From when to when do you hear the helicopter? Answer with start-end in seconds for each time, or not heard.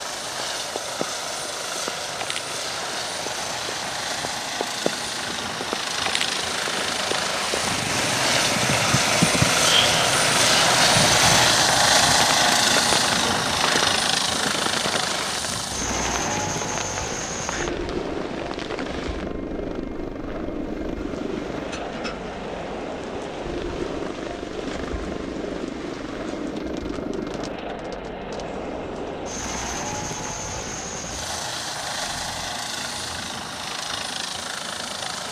0.0-35.2.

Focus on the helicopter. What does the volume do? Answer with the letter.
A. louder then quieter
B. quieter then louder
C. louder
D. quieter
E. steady
A.